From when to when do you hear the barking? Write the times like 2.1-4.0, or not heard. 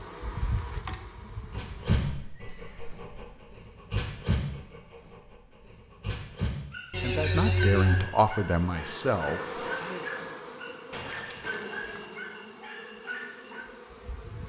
1.5-13.7.